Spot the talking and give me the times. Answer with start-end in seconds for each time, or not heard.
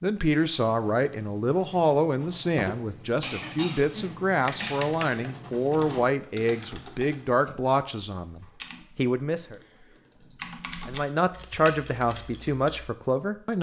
0.0-9.6, 10.8-13.5.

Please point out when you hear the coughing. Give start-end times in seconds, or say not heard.
3.2-5.0.